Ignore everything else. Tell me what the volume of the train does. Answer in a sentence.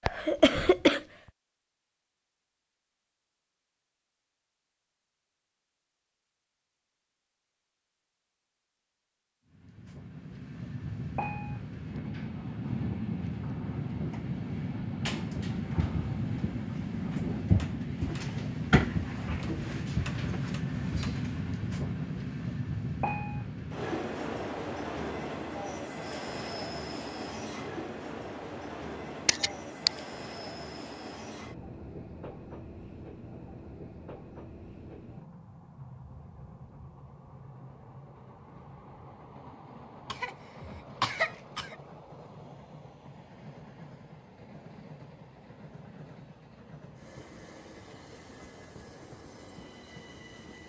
The loudness of the train goes down.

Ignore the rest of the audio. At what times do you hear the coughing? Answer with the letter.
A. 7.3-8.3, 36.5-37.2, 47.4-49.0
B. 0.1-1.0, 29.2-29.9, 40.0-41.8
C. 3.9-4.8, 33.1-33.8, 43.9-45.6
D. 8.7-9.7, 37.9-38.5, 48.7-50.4
B.